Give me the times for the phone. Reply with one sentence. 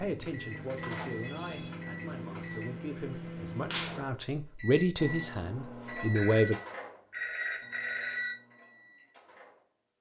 You can hear the phone from 0.8 to 1.8 s and from 6.2 to 8.3 s.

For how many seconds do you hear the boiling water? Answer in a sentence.
The boiling water can't be heard in this clip.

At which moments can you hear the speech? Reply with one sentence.
You can hear the speech from 0.0 to 6.6 s.